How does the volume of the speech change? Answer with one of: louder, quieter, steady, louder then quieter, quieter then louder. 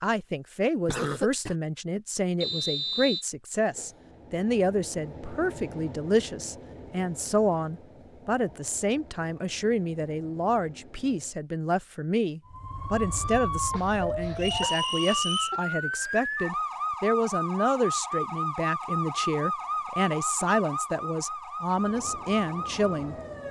steady.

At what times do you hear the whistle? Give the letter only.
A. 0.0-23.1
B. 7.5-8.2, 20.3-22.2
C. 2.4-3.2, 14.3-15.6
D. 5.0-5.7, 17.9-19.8
C.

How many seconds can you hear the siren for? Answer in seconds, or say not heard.
11 s.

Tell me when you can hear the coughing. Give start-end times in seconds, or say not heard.
0.8-1.6, 13.7-15.6.